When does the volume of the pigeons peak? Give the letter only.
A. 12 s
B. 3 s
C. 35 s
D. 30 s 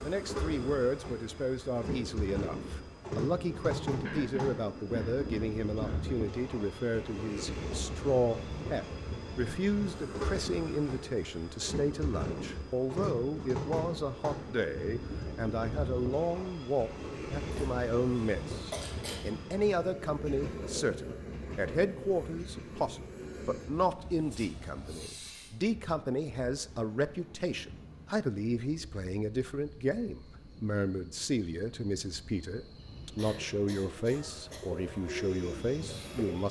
C.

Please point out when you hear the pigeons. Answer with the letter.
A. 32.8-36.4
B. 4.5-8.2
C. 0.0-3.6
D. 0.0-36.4
A.